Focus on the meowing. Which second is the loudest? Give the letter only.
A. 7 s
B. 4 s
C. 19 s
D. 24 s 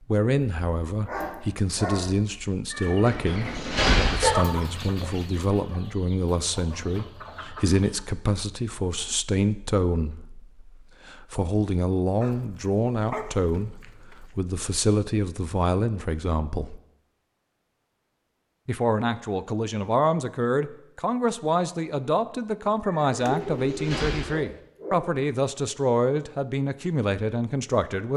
B.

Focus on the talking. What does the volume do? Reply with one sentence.
The loudness of the talking stays about the same.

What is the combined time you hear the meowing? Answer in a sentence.
The meowing can be heard for 3 seconds in total.